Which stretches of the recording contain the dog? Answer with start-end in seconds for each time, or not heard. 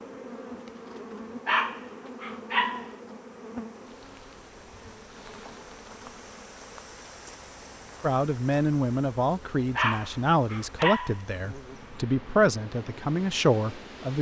1.4-2.9, 9.8-11.2.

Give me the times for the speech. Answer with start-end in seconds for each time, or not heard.
8.0-14.1.